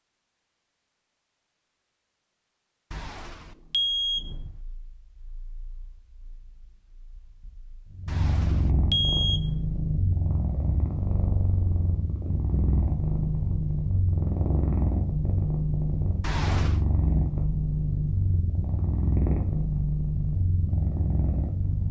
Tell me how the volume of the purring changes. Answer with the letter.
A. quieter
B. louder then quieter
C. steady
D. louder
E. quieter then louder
D.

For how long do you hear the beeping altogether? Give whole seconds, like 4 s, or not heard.
4 s.